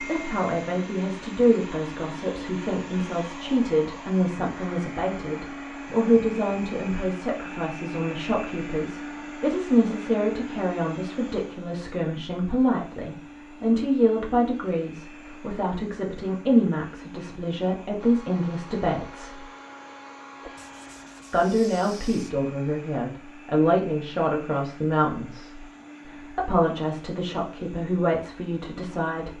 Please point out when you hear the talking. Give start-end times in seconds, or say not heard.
0.0-19.4, 21.3-29.3.